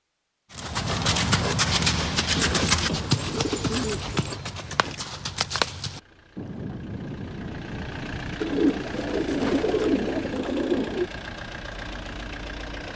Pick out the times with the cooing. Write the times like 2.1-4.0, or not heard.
2.4-4.3, 8.4-11.1.